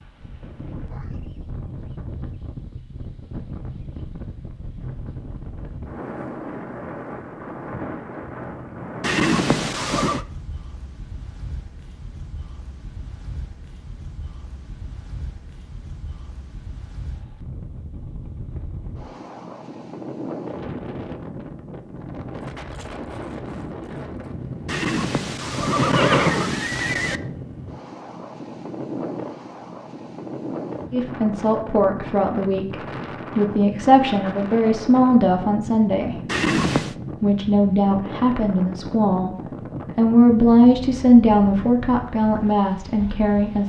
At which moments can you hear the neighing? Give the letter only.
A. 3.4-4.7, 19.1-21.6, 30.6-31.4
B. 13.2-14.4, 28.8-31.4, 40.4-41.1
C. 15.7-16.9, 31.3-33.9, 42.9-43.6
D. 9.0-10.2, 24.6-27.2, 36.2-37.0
D.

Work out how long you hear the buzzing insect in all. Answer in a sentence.
You can't hear the buzzing insect here.